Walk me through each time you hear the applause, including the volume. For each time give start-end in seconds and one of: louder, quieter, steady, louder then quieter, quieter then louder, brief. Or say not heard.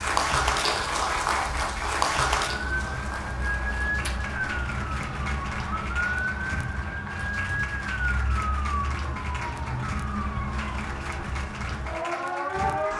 0.0-12.9 quieter.